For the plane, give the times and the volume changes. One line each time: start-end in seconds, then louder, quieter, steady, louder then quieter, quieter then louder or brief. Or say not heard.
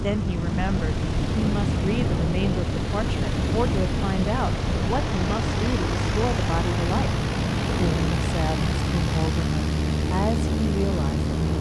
0.0-11.5 steady.